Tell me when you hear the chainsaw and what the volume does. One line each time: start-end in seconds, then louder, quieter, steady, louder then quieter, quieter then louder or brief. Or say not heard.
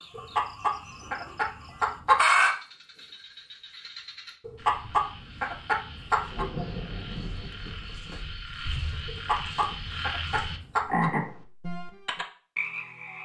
not heard.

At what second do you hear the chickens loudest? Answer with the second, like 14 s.
2 s.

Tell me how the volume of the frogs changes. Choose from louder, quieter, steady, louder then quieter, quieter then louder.
louder.